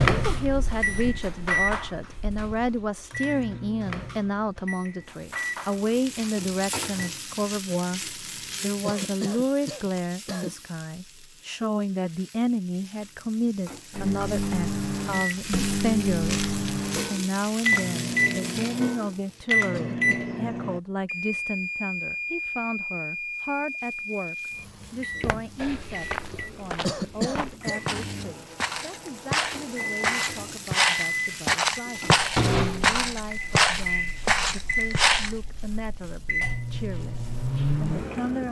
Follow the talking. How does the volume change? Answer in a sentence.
The volume of the talking goes down.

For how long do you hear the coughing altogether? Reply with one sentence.
The coughing can be heard for 3 seconds in total.